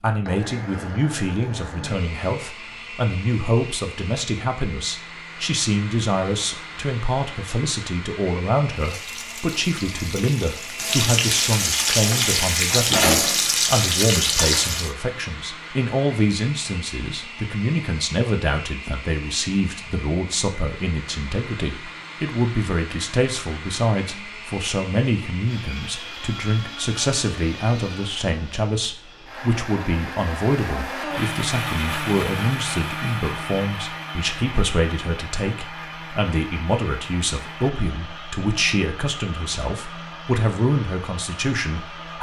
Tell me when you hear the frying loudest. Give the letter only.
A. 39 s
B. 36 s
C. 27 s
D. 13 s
D.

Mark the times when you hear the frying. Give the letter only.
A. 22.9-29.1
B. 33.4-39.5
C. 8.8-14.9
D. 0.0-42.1
C.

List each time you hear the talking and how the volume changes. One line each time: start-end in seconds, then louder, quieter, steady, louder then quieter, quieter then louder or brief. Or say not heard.
0.0-42.1 steady.